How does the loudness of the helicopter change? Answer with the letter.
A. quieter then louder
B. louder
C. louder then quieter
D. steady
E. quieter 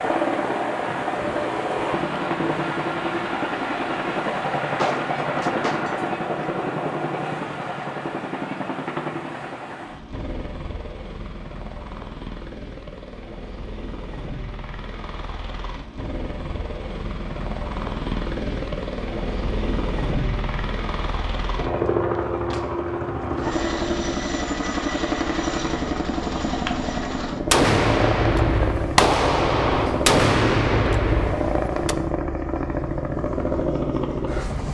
A.